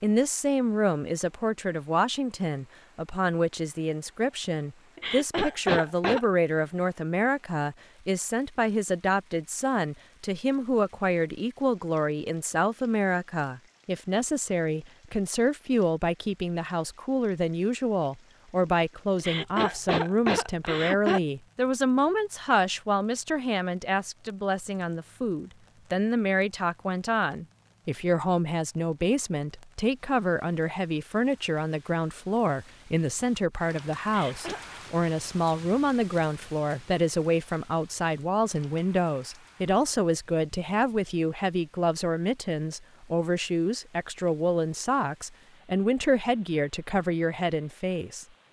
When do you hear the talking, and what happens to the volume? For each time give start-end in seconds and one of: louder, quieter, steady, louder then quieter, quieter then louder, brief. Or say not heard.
0.0-48.2 steady.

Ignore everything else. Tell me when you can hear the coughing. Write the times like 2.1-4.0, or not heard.
5.0-6.2, 19.1-21.2, 34.0-34.6.